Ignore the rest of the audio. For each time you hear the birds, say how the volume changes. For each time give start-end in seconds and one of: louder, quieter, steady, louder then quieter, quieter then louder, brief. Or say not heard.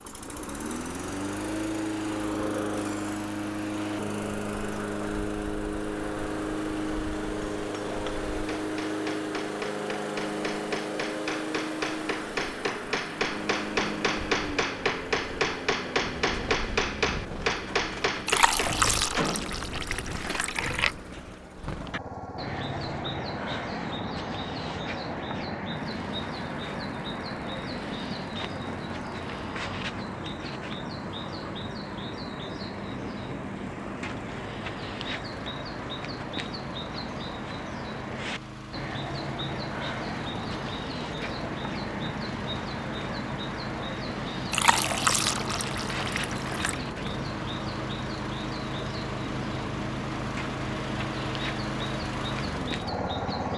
16.0-53.5 steady.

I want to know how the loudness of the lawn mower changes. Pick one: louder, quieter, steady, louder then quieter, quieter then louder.
quieter then louder.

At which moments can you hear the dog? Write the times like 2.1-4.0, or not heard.
not heard.